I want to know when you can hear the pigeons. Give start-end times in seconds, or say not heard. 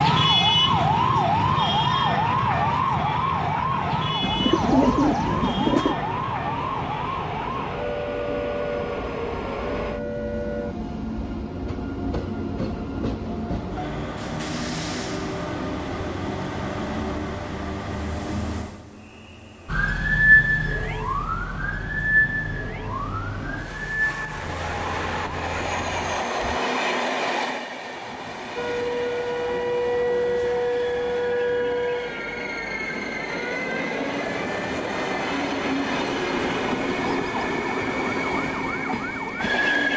4.2-6.0.